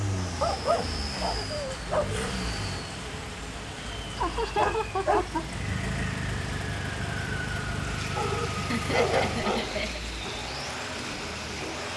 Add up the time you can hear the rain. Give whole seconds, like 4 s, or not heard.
12 s.